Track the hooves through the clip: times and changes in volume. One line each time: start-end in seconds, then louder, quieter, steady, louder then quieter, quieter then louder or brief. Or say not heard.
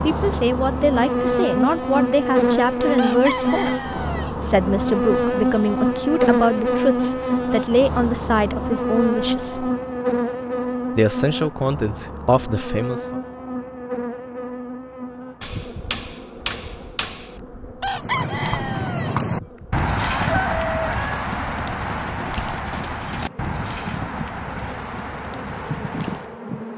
17.9-26.4 quieter.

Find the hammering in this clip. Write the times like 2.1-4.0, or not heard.
15.4-17.4.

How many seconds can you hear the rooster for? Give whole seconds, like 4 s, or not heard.
5 s.